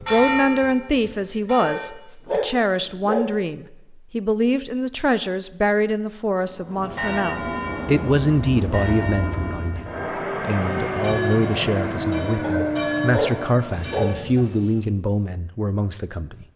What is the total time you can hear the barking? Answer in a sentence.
The barking can be heard for 4 seconds in total.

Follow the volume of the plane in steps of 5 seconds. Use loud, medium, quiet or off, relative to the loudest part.
off, medium, loud, off.